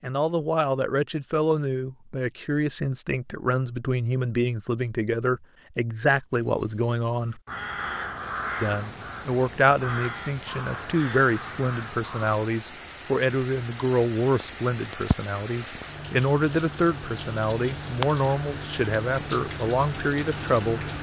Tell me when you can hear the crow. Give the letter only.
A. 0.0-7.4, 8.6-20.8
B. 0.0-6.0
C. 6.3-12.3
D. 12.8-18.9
C.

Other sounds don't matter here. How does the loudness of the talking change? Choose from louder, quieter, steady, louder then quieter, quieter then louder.
steady.